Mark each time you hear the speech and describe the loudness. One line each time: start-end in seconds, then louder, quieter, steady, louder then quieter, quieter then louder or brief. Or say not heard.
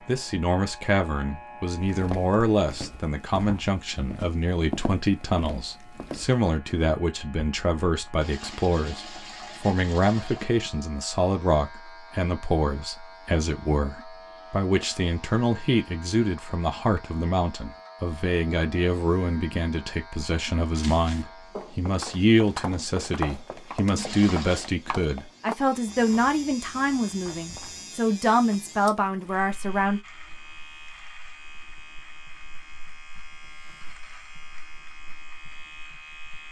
0.1-30.0 steady.